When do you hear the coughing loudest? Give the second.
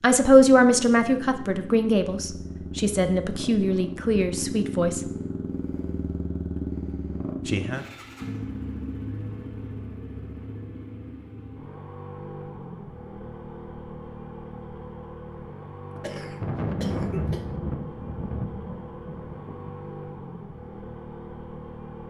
17 s.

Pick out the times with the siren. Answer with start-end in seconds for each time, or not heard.
not heard.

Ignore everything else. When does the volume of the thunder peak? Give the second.
17 s.